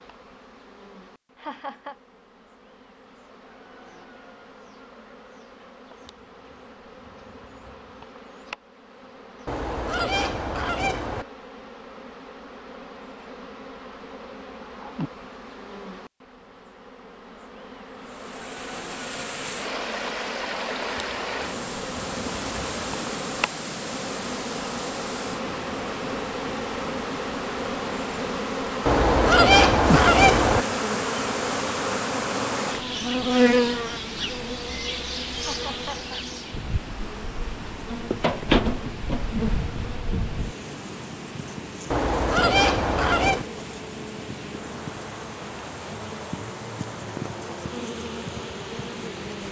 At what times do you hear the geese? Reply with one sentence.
You can hear the geese from 9.4 to 11.2 s, from 28.9 to 30.6 s and from 41.9 to 43.5 s.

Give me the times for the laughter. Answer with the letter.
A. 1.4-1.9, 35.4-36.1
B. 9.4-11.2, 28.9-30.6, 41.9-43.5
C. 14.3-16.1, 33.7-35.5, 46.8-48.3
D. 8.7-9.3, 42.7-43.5
A.